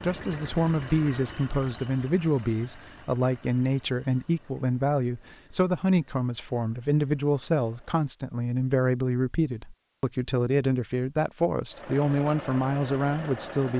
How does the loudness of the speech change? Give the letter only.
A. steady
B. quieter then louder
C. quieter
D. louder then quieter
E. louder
A.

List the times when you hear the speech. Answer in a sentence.
The speech can be heard from 0.0 to 13.7 s.